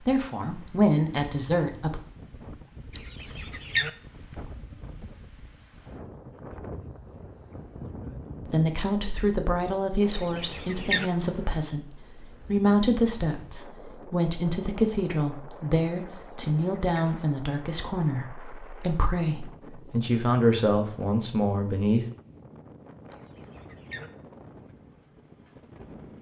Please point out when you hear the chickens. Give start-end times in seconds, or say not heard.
2.9-3.9, 10.1-11.1, 16.1-17.1, 23.1-24.1.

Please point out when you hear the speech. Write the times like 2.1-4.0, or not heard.
0.1-2.0, 8.4-22.1.